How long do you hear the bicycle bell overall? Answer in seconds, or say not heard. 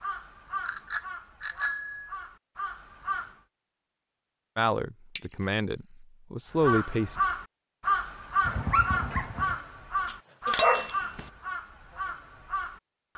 3 s.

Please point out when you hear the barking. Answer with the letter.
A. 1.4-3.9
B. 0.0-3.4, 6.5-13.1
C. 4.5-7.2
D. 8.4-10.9
D.